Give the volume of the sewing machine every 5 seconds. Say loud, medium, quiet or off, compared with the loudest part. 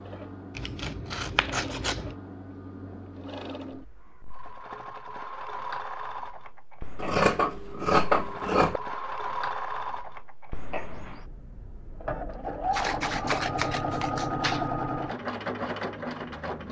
medium, loud, loud, loud.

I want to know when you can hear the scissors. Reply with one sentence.
The scissors can be heard from 0.6 to 2.1 s, from 7.0 to 8.8 s and from 12.7 to 14.7 s.